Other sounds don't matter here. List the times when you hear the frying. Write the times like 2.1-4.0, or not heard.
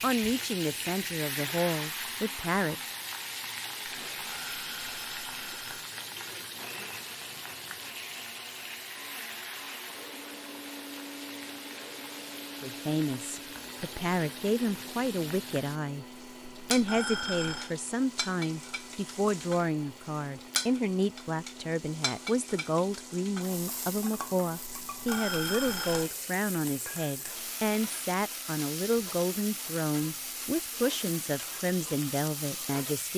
0.0-33.1.